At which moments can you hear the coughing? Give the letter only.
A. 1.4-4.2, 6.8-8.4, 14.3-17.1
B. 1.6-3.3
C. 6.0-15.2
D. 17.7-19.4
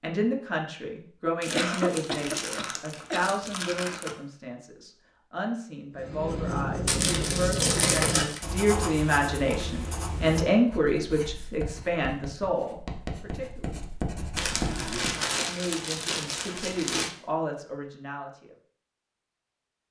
B.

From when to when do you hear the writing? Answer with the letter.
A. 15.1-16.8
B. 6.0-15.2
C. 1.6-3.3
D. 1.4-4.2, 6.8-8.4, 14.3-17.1
B.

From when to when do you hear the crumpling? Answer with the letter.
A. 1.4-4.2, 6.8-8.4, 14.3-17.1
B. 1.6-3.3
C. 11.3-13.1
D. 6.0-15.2
A.